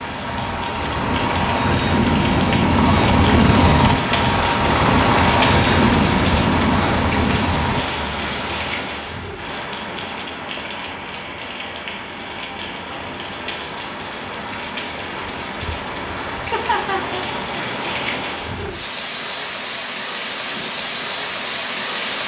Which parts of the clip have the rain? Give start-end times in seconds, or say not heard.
0.0-22.2.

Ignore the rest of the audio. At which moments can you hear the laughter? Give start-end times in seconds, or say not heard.
16.5-17.2.